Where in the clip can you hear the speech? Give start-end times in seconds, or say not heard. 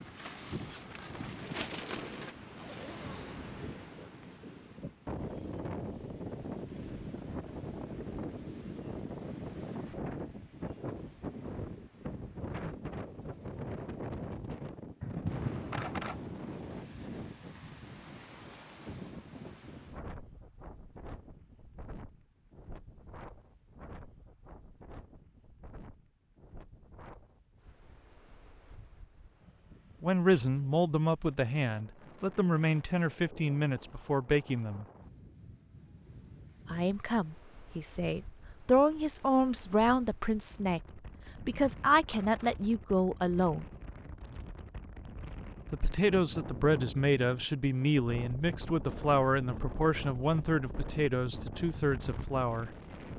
30.0-34.9, 36.7-43.6, 45.7-52.7.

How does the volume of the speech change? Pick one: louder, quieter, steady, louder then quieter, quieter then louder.
steady.